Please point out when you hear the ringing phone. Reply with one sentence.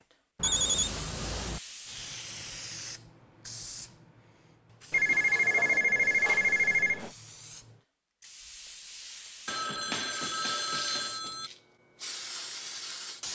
You can hear the ringing phone from 0.3 to 1.6 s, from 4.9 to 7.1 s and from 9.4 to 11.5 s.